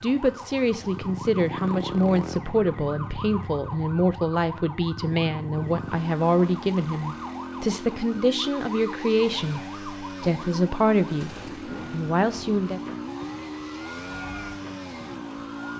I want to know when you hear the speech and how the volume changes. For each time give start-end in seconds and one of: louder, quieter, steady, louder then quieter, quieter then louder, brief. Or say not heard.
0.0-12.8 steady.